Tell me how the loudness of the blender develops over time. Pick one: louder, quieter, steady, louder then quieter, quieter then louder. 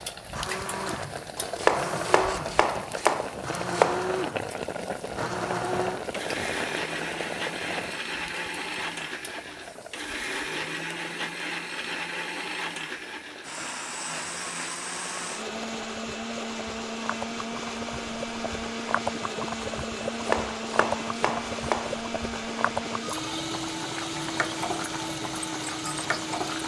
steady.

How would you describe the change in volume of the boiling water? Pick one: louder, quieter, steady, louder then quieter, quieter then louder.
quieter then louder.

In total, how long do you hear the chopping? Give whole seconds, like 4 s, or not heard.
5 s.